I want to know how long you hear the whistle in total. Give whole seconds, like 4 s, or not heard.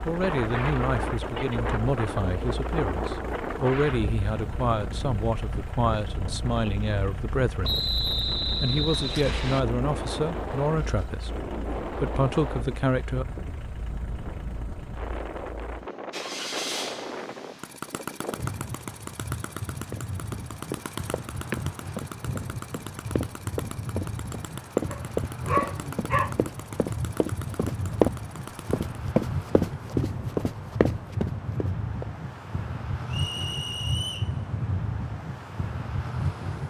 3 s.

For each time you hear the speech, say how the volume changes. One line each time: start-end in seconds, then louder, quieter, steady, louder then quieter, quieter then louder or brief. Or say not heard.
0.1-13.2 steady.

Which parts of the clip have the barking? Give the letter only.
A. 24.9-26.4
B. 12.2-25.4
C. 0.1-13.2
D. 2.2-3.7
A.